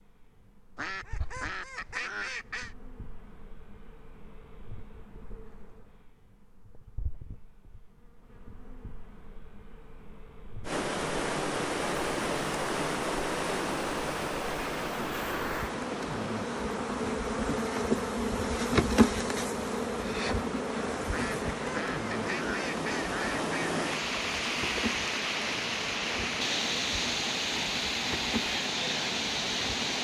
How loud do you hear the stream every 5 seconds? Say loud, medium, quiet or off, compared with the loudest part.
off, off, loud, medium, loud, loud.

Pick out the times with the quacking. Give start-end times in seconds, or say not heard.
0.8-2.8, 21.1-23.8.